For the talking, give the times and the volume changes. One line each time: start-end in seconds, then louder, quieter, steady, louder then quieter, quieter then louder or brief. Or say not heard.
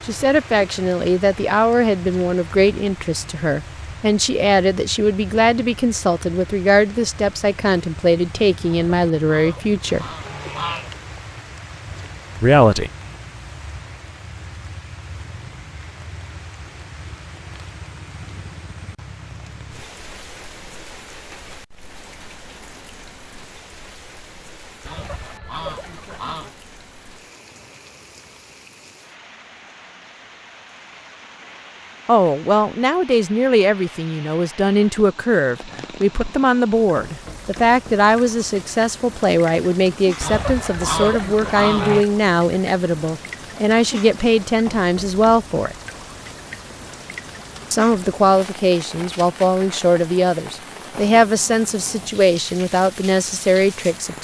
0.1-10.1 steady
12.4-12.9 brief
32.0-45.8 steady
47.7-54.1 steady.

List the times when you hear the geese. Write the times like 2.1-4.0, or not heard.
8.7-10.9, 24.9-26.6, 40.2-42.0.